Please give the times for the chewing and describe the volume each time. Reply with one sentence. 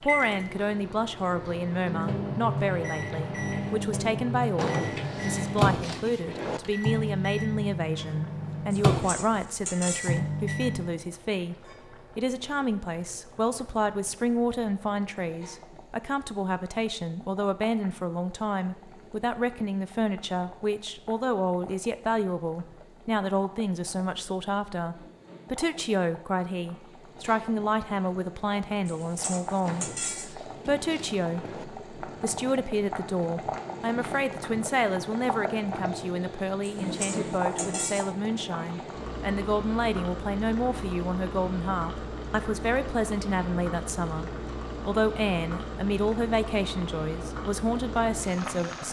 You can't hear the chewing here.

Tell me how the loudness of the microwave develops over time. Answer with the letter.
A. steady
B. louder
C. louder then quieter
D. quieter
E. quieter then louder
B.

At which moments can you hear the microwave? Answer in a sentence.
You can hear the microwave from 0.0 to 10.9 s.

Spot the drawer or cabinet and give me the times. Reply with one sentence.
You can hear the drawer or cabinet from 4.5 to 6.6 s and from 29.6 to 31.6 s.